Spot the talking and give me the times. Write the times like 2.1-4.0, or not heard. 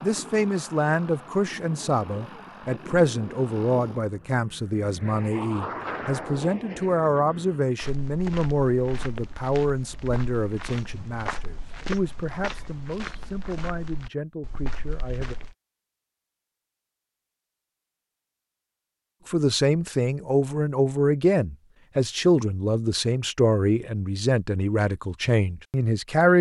0.0-15.3, 19.2-26.3.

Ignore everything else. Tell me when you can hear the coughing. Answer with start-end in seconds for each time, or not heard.
not heard.